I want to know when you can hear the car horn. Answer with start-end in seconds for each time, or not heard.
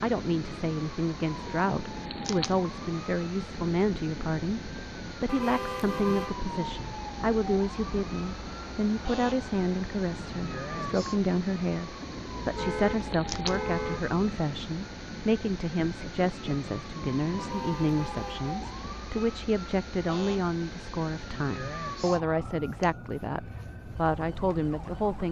5.2-6.3, 12.4-14.1, 17.4-18.6.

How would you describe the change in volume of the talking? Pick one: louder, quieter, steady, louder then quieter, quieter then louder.
steady.